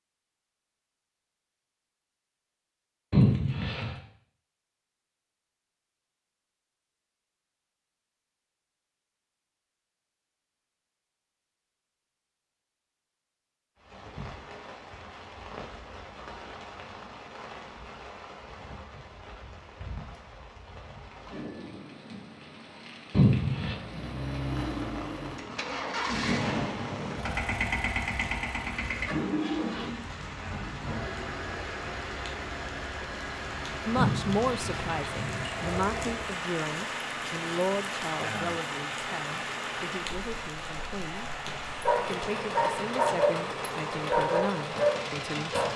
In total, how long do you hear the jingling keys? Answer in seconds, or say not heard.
3 s.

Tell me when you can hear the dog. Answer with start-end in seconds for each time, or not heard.
41.8-45.7.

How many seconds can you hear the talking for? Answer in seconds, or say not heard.
11 s.